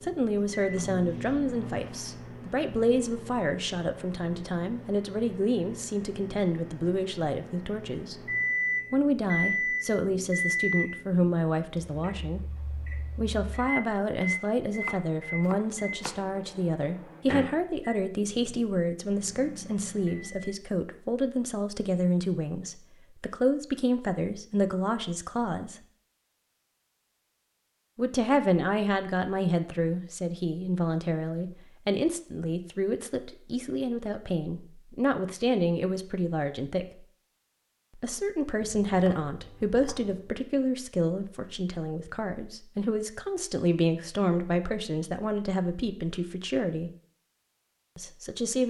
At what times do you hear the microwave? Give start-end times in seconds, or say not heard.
0.0-20.6.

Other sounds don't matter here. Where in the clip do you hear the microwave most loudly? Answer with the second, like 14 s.
9 s.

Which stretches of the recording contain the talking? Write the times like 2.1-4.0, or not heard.
0.0-8.2, 8.9-12.5, 13.2-25.8, 27.9-37.0, 38.0-46.9, 48.0-48.6.